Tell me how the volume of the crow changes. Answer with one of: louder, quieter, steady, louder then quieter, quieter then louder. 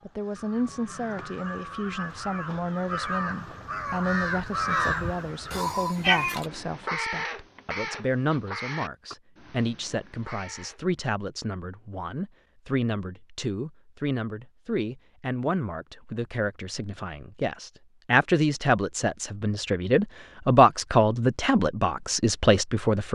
louder then quieter.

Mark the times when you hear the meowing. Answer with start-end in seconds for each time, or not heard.
5.5-6.5.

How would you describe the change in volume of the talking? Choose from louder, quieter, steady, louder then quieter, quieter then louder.
louder.